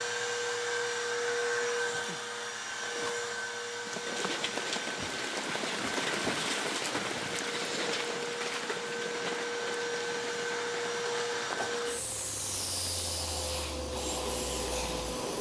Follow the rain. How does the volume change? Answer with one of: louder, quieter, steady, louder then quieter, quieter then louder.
quieter.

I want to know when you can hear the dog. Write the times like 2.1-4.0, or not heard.
not heard.